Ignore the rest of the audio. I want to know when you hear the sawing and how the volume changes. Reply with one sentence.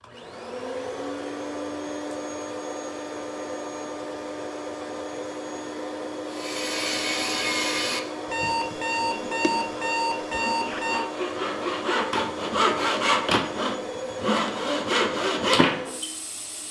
The sawing can be heard from 6.3 to 16.1 s, getting quieter then louder.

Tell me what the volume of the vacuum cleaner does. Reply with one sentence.
The volume of the vacuum cleaner stays about the same.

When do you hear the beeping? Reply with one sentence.
The beeping can be heard from 8.2 to 11.1 s.